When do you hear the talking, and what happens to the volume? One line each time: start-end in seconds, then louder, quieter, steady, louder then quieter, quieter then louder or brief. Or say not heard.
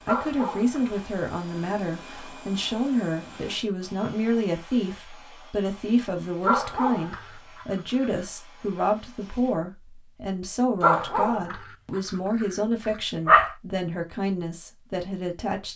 0.1-15.7 steady.